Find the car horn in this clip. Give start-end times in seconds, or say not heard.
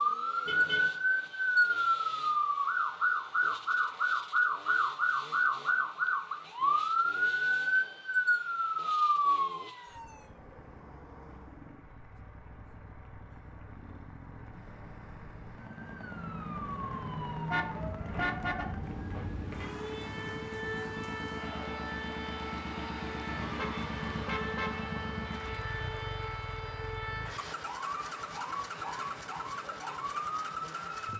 0.5-0.9, 17.5-18.8, 23.2-25.2.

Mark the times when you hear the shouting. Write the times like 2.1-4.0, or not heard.
not heard.